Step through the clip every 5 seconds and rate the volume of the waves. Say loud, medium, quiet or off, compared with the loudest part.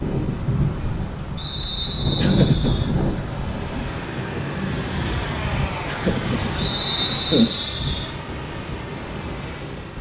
loud, medium.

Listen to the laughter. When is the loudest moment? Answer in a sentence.
The volume of the laughter peaks at 7 seconds.